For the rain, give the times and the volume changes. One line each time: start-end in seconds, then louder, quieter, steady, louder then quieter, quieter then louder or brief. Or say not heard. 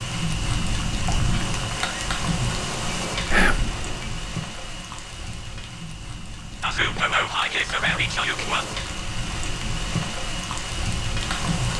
0.0-11.7 quieter then louder.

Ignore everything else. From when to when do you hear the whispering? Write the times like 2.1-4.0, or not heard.
3.3-3.8, 6.6-8.7.